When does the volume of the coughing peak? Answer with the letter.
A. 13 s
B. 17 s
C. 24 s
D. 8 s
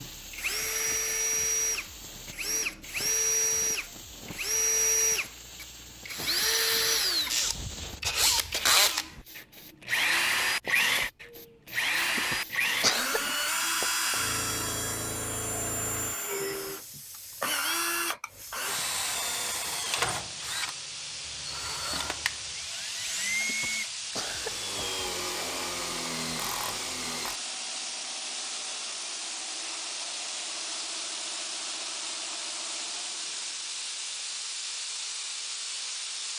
A.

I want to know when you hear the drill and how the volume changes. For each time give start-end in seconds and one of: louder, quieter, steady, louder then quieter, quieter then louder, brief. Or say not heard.
0.0-27.4 quieter.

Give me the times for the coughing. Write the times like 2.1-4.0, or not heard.
12.1-13.4, 23.4-24.7.